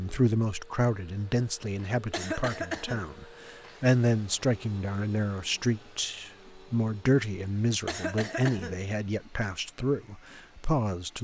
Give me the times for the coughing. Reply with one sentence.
You can hear the coughing from 2.1 to 3.0 s and from 7.8 to 8.8 s.